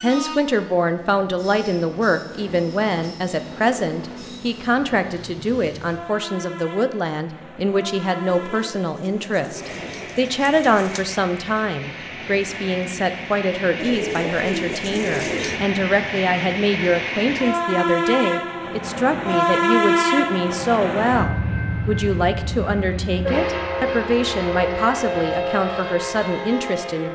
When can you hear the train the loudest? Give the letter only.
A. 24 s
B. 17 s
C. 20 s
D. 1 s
C.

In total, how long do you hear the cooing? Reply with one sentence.
You can hear the cooing for 5 seconds altogether.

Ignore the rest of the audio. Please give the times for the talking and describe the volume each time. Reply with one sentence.
The talking can be heard from 0.0 to 27.1 s, at a steady volume.